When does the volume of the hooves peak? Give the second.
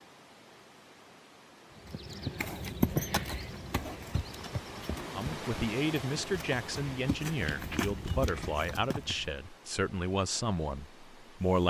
3 s.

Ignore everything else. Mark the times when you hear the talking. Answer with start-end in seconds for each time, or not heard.
5.1-11.6.